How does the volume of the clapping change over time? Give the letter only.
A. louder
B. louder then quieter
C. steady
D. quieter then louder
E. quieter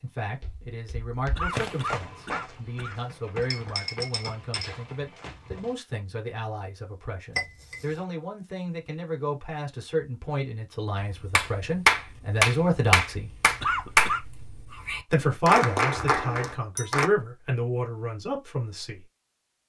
E.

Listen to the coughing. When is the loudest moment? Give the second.
14 s.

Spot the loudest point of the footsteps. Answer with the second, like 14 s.
2 s.